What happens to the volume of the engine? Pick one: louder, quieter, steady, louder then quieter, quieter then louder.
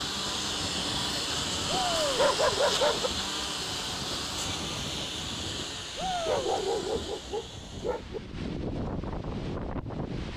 quieter.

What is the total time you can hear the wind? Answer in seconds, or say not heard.
10 s.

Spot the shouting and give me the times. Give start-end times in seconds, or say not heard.
1.6-2.2, 6.0-6.5.